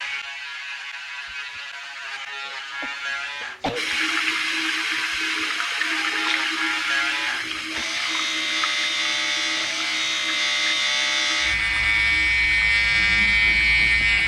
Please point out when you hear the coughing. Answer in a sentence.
The coughing can be heard from 2.5 to 4.0 s.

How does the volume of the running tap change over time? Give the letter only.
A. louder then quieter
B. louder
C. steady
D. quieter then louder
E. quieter
E.